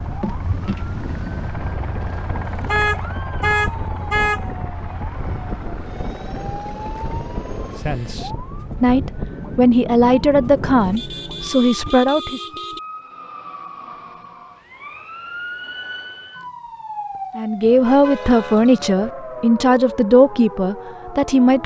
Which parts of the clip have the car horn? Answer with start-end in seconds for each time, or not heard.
2.6-4.5, 10.8-12.8, 17.6-19.1.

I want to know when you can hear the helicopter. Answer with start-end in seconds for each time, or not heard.
0.0-8.2.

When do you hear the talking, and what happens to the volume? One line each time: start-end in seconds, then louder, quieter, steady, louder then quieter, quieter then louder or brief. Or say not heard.
7.8-12.4 steady
17.4-21.6 quieter.